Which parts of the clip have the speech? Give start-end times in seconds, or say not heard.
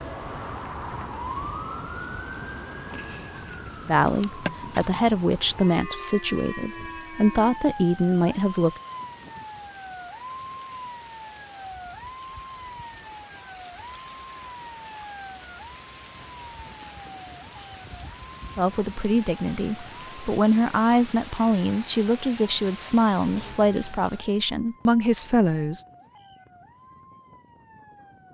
3.9-8.8, 18.6-25.9.